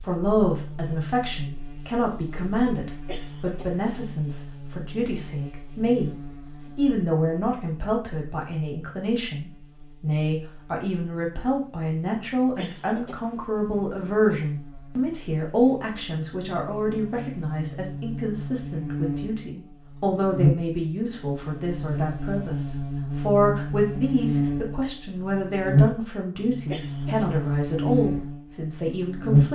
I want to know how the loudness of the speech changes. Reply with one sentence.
The volume of the speech stays about the same.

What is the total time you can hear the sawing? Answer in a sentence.
You can't hear the sawing here.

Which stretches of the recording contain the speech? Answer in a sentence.
You can hear the speech from 0.0 to 6.2 s and from 6.8 to 29.4 s.